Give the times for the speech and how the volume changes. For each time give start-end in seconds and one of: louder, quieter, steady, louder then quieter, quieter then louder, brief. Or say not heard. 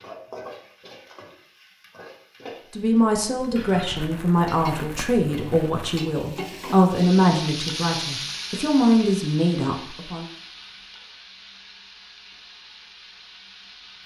2.7-10.2 steady.